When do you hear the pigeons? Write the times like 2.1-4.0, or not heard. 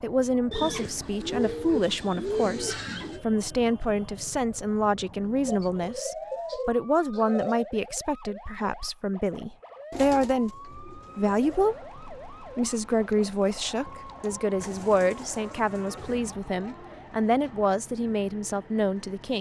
0.5-3.2, 5.5-7.7, 9.9-11.8, 14.6-16.2.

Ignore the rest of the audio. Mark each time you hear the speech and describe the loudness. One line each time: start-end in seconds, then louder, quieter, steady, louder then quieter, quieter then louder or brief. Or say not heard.
0.0-19.3 steady.